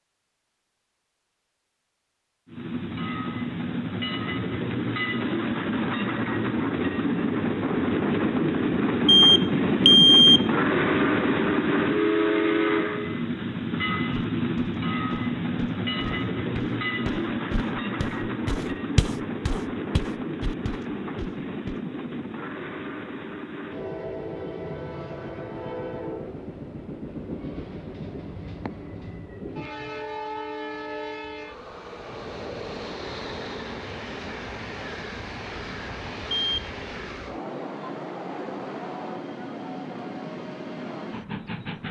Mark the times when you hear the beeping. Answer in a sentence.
You can hear the beeping from 9.1 to 10.4 s and from 36.3 to 36.7 s.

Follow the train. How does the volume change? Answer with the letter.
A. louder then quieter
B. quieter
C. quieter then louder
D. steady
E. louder
B.